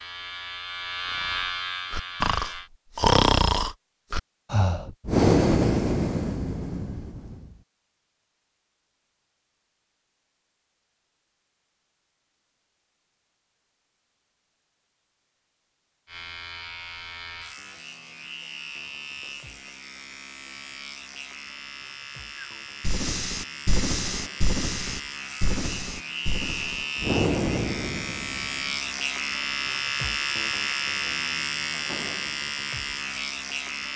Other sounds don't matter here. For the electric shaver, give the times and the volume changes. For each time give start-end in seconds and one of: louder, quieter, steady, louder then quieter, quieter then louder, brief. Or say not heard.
0.0-2.7 brief
16.1-33.9 louder.